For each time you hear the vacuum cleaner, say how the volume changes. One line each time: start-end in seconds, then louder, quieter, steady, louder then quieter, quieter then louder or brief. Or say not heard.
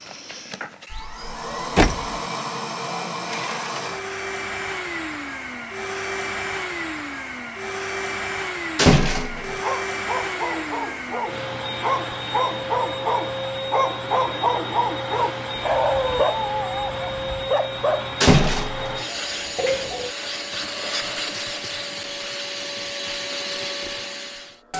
0.0-24.7 steady.